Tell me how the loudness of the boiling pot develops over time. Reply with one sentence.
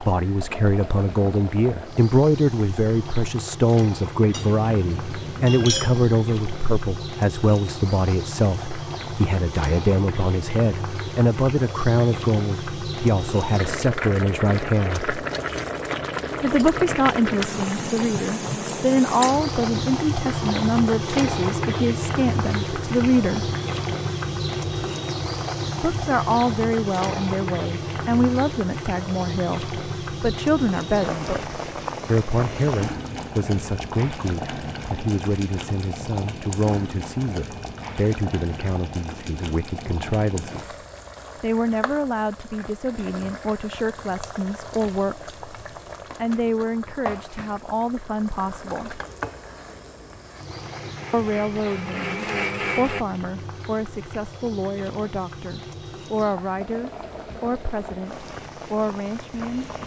The volume of the boiling pot goes up, then down.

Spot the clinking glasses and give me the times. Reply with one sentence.
You can hear the clinking glasses from 4.3 to 6.0 s.